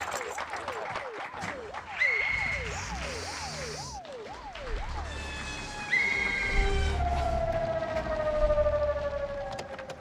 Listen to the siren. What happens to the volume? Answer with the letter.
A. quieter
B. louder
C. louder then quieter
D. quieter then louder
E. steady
B.